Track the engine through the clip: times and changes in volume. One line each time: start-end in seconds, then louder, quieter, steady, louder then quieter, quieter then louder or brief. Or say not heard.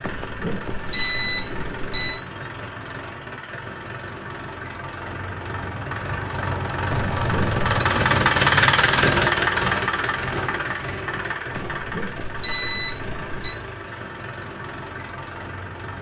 0.0-15.9 louder then quieter.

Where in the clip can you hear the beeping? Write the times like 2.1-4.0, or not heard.
0.1-2.2, 6.9-7.6, 11.6-13.6.